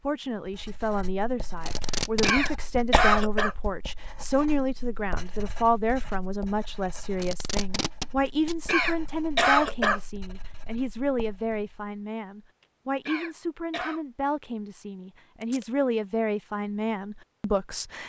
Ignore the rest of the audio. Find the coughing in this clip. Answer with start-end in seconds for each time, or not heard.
2.2-3.5, 8.7-10.0, 13.1-14.0.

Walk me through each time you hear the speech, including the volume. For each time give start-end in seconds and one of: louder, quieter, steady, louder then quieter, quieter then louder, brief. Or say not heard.
0.0-18.0 steady.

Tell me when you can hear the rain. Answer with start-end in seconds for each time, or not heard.
not heard.